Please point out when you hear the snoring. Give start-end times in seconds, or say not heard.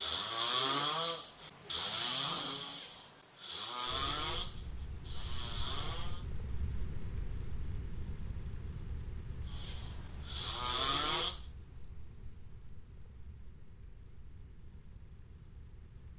0.0-6.2, 9.4-11.5.